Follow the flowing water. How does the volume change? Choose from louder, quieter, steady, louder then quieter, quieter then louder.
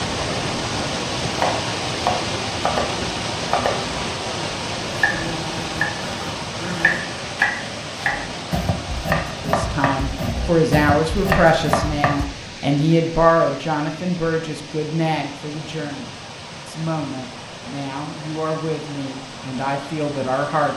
quieter.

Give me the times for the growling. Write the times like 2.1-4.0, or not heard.
5.0-7.0.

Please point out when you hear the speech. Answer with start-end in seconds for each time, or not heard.
9.4-20.7.